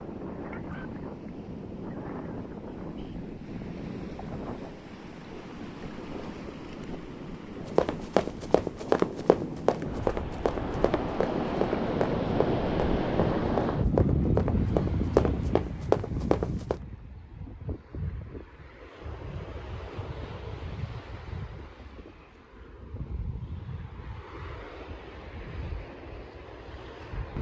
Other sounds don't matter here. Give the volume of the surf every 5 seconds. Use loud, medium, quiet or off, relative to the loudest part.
medium, medium, loud, medium, quiet, quiet.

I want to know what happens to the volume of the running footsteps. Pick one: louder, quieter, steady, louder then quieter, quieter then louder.
quieter then louder.